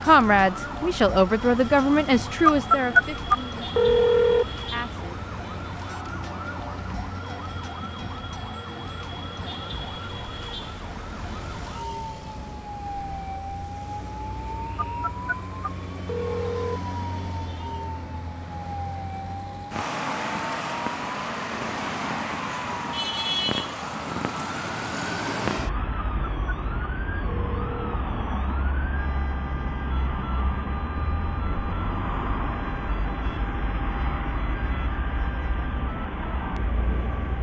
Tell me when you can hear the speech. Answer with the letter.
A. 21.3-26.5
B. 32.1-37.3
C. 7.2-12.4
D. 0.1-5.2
D.